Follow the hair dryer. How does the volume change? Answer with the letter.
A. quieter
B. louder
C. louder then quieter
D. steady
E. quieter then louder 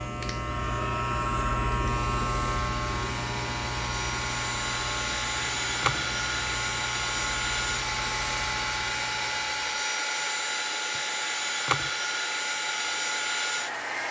B.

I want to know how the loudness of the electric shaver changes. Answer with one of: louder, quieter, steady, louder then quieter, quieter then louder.
quieter.